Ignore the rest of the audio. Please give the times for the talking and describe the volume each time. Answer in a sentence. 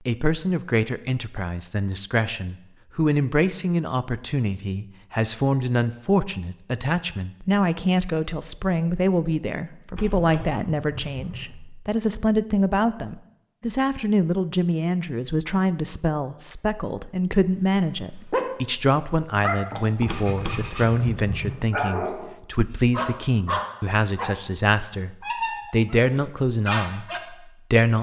The talking can be heard from 0.1 to 27.9 s, at a steady volume.